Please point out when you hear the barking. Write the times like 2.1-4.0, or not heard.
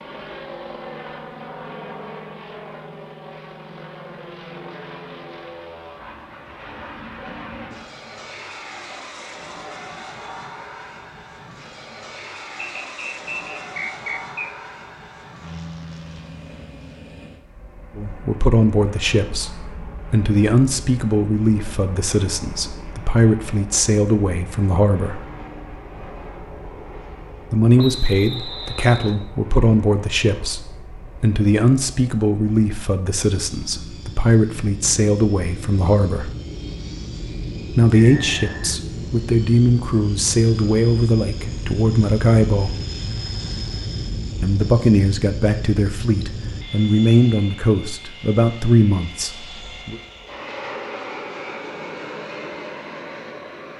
not heard.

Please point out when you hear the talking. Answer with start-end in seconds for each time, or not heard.
17.9-25.2, 27.5-36.3, 37.8-42.8, 44.4-50.0.